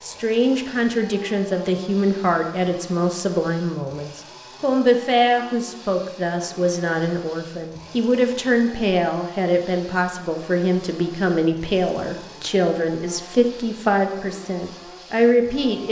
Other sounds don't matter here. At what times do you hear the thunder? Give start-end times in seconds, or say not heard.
not heard.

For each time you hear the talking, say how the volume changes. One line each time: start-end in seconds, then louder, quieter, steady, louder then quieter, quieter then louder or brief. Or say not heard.
0.0-15.8 steady.